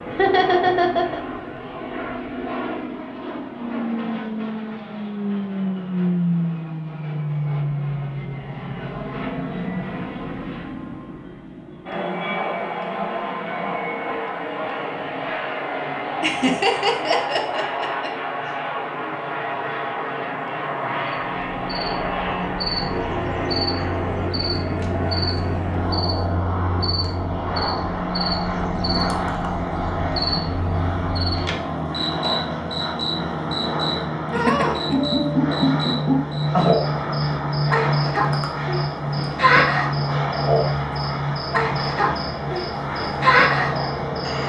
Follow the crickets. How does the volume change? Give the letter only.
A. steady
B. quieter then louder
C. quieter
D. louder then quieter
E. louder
E.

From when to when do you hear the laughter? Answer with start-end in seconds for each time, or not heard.
0.1-1.2, 16.2-18.1, 34.4-35.0.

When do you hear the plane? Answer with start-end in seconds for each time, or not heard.
0.0-44.4.